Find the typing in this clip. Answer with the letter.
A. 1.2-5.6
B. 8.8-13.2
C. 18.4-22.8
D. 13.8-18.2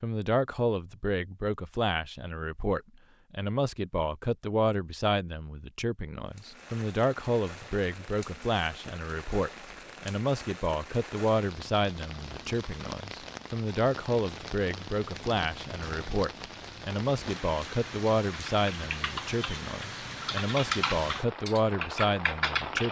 C.